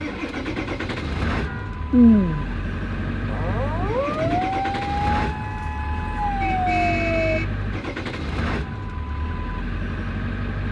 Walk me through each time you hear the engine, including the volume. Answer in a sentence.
The engine can be heard from 0.0 to 10.6 s, at a steady volume.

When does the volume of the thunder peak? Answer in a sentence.
The volume of the thunder peaks at 2 seconds.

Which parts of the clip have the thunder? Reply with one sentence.
You can hear the thunder from 1.9 to 4.4 s.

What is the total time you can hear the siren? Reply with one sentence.
You can hear the siren for 4 seconds altogether.